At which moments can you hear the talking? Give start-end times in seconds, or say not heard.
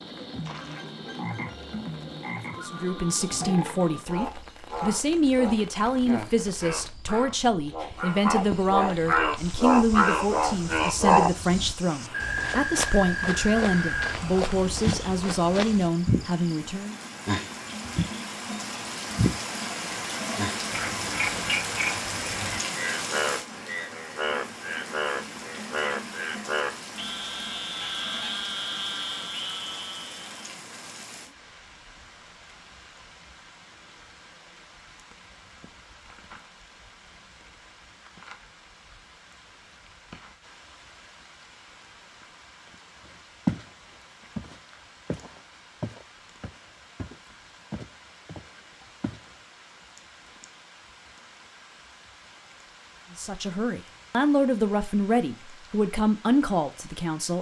2.5-16.9, 53.1-57.3.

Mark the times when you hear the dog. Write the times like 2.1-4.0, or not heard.
not heard.